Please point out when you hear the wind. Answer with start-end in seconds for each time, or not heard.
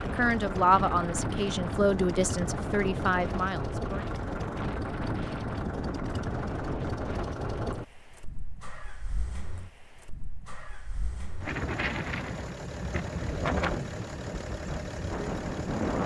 0.0-16.0.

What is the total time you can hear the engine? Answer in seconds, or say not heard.
16 s.